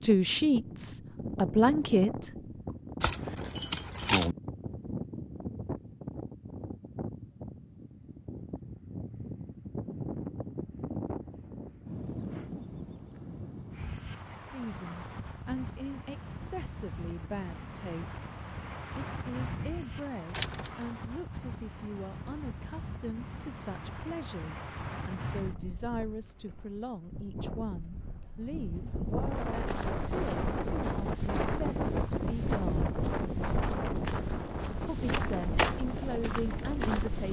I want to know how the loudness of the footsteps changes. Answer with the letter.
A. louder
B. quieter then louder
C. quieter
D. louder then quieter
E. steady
A.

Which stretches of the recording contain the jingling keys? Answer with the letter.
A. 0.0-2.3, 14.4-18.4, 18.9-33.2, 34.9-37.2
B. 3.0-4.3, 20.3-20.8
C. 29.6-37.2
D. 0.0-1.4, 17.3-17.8
B.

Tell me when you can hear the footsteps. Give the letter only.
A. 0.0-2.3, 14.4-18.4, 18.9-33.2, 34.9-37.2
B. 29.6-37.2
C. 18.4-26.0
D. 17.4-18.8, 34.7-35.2
B.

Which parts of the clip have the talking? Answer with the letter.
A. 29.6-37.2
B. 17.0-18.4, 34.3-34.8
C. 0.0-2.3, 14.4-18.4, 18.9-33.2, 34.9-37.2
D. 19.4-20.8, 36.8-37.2
C.